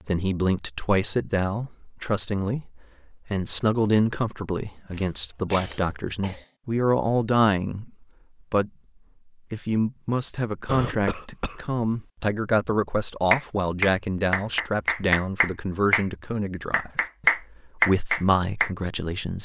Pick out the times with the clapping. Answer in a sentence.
The clapping can be heard from 13.3 to 16.1 s and from 16.7 to 18.7 s.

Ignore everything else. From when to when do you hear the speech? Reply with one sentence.
The speech can be heard from 0.1 to 8.7 s and from 9.5 to 19.3 s.